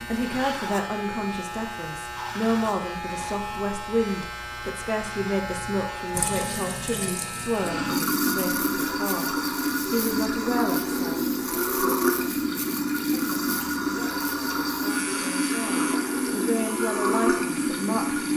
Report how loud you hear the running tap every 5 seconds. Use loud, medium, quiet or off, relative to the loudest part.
off, loud, loud, loud.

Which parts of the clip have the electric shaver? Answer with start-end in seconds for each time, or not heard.
0.0-18.3.